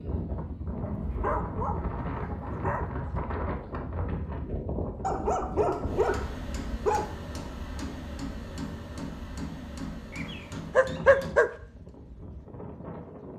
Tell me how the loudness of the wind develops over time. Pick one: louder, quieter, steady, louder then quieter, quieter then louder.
quieter.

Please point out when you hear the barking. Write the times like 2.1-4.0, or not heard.
0.8-2.9, 5.0-7.0, 10.2-11.5.